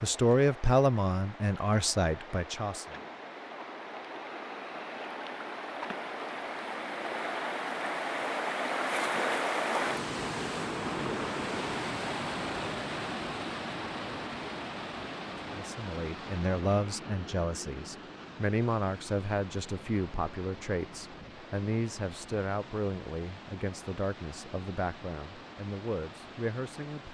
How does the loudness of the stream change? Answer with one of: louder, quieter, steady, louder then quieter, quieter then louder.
louder then quieter.